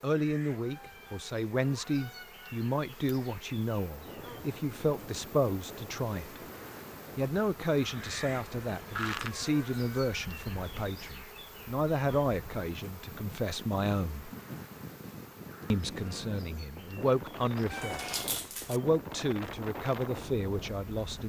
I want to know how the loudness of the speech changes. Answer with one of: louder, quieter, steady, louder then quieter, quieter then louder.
steady.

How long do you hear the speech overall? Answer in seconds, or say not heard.
19 s.